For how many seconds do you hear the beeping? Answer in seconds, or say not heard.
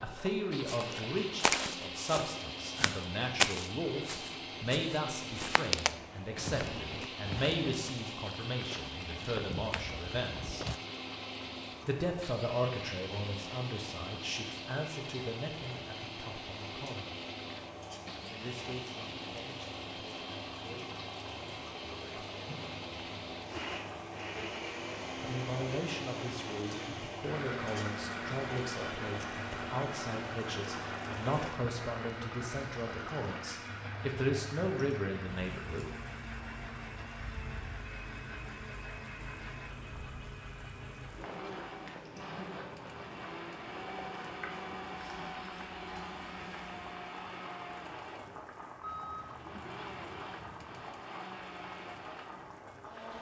2 s.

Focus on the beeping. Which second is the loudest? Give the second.
49 s.